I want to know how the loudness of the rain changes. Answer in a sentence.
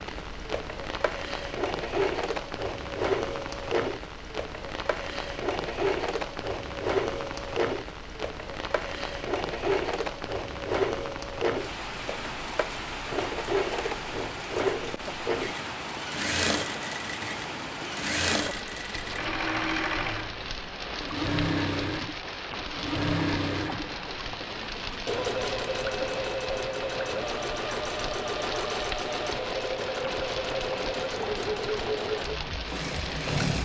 The loudness of the rain stays about the same.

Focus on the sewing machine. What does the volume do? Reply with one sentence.
The loudness of the sewing machine stays about the same.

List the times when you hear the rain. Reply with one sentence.
You can hear the rain from 0.0 to 33.5 s.